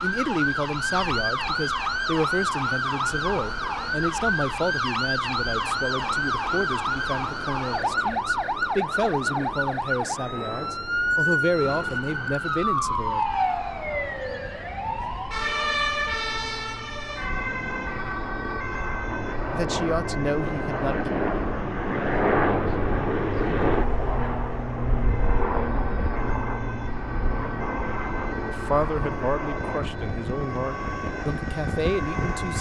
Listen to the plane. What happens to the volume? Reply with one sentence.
The loudness of the plane goes up, then down.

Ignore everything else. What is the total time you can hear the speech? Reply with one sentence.
You can hear the speech for 19 seconds altogether.